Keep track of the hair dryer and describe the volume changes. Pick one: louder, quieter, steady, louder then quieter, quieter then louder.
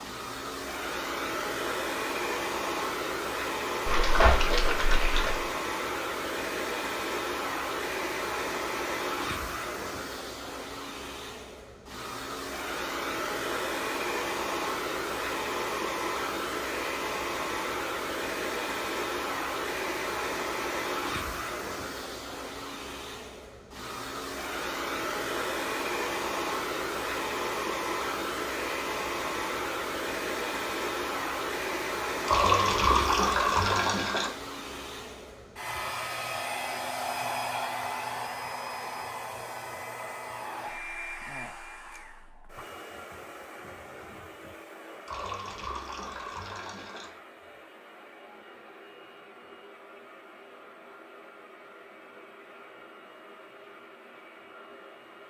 quieter.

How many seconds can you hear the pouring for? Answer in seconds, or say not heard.
6 s.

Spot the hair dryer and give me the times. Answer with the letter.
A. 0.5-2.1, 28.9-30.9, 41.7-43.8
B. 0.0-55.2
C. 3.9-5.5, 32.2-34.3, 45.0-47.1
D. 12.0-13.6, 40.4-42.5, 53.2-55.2
B.